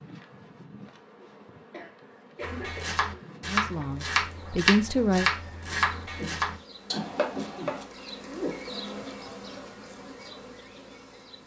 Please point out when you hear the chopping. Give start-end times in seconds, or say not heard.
2.4-7.8.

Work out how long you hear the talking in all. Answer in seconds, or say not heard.
2 s.